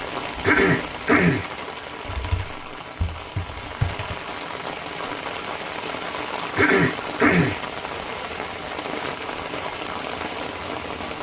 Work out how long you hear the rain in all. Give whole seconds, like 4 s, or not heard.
11 s.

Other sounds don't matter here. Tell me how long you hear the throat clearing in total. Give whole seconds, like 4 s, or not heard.
2 s.